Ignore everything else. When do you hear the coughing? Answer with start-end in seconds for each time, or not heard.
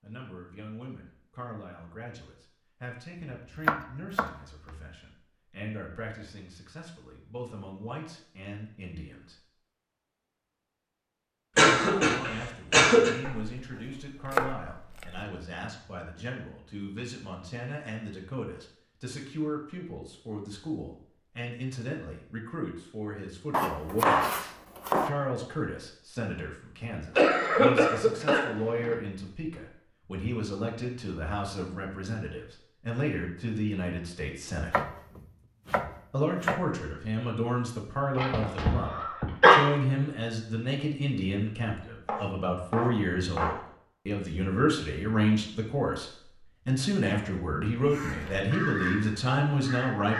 11.6-13.1, 27.1-28.9, 38.1-39.6.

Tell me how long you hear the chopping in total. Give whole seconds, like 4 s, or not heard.
8 s.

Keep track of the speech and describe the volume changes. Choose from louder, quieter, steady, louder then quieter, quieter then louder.
louder.